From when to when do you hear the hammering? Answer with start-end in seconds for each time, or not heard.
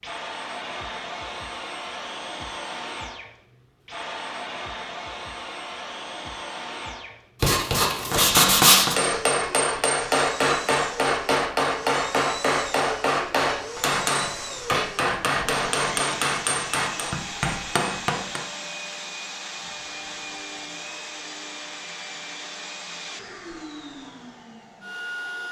8.1-18.5.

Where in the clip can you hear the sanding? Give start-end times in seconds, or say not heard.
7.4-8.9.